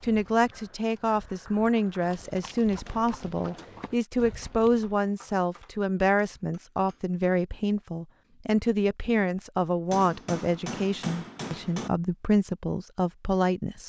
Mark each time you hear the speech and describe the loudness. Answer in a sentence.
The speech can be heard from 0.0 to 13.8 s, at a steady volume.